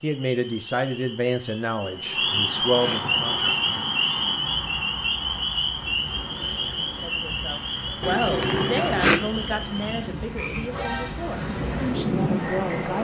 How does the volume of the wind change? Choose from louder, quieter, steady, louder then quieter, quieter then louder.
louder.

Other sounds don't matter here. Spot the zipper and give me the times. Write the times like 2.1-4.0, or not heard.
1.8-3.6, 8.0-9.2.